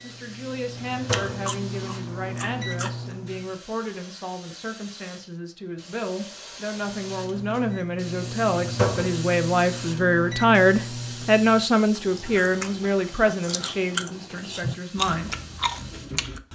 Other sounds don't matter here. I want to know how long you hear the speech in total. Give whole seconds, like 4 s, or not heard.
15 s.